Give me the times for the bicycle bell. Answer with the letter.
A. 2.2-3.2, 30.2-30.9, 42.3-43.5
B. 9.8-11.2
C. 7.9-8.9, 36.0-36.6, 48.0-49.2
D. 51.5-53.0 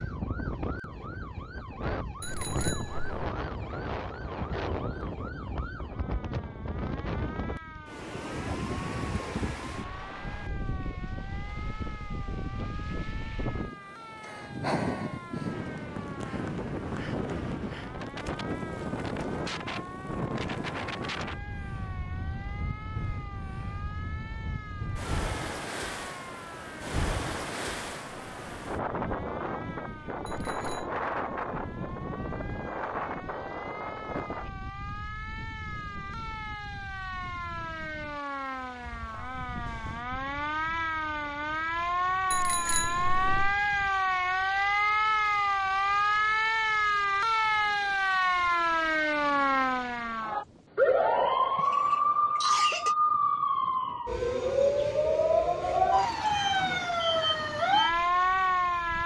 A.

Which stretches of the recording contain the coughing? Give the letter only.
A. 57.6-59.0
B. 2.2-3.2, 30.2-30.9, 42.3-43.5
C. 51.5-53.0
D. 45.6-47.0
C.